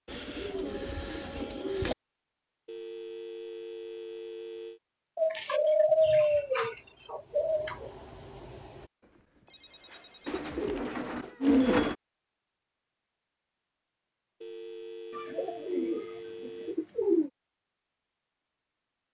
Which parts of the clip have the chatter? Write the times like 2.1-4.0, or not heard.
not heard.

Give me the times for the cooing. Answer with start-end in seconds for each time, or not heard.
0.1-1.9, 5.2-7.9, 10.2-11.9, 15.2-17.3.